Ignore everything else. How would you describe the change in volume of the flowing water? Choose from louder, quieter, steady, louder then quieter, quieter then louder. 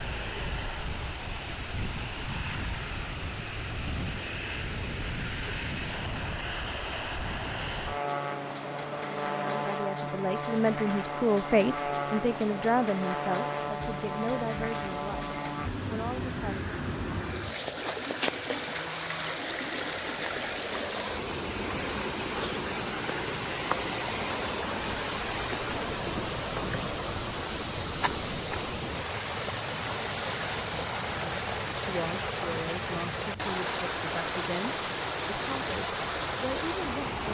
louder.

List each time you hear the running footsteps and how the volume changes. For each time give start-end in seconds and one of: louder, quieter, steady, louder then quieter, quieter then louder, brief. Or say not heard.
not heard.